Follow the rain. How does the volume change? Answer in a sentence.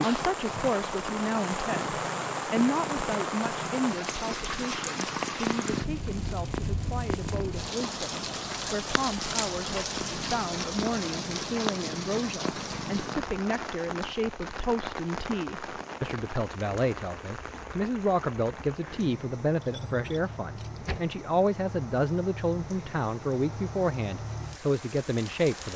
The loudness of the rain goes down.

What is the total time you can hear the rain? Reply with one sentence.
The rain can be heard for 26 seconds in total.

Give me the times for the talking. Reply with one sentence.
The talking can be heard from 0.0 to 25.7 s.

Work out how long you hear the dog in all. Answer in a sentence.
You can't hear the dog here.